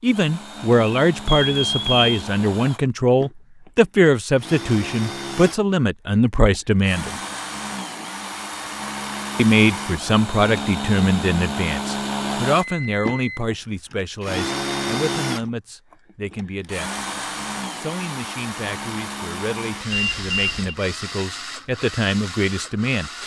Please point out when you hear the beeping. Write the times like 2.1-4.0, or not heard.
1.2-2.1, 12.6-13.6, 19.9-20.8.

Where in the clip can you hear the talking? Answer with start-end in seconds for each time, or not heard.
0.0-7.2, 9.3-17.1, 17.8-23.1.